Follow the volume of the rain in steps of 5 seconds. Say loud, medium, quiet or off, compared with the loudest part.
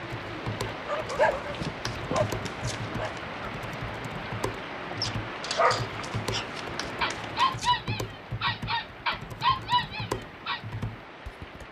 loud, loud, medium.